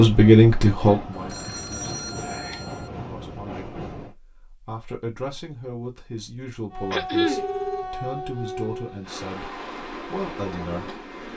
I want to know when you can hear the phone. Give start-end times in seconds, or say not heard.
1.1-2.9, 7.2-7.9.